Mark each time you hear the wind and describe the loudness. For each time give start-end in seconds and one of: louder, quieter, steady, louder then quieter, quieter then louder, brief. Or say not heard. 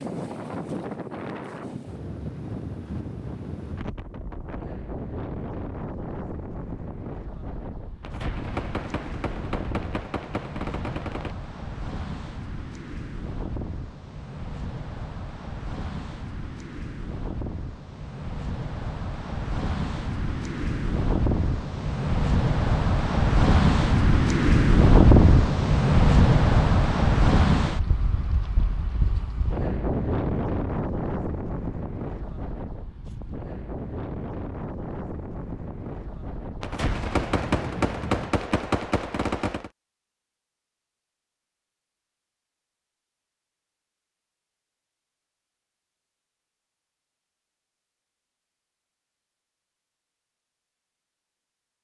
0.0-38.4 louder then quieter.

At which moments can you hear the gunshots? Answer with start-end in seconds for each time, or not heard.
8.0-11.3, 36.6-39.7.